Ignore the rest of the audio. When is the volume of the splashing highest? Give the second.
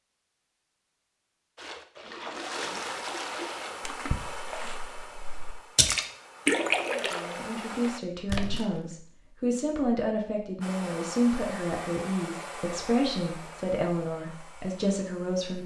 7 s.